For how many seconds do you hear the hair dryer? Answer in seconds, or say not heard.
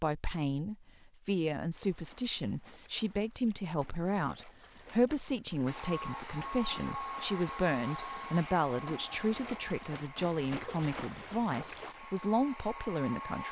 8 s.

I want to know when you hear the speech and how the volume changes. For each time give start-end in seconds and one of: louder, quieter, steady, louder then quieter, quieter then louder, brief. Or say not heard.
0.0-13.4 steady.